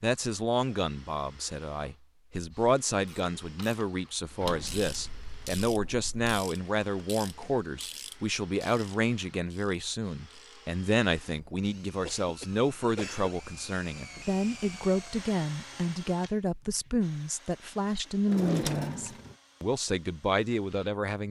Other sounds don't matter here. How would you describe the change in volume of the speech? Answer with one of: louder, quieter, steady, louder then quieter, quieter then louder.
steady.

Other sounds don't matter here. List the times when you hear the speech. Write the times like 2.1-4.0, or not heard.
0.0-21.2.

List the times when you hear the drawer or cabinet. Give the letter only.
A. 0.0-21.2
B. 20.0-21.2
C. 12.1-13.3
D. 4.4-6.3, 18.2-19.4
D.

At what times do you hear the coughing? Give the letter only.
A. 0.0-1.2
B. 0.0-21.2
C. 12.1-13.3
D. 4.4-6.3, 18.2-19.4
C.